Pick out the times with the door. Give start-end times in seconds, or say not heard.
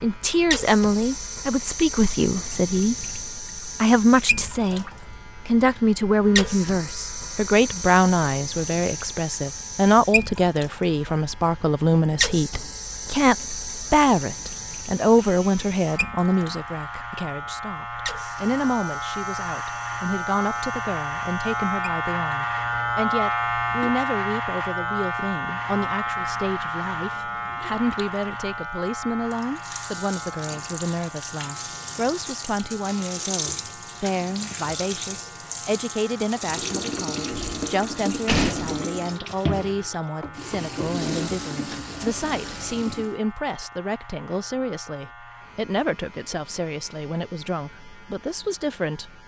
37.2-38.8.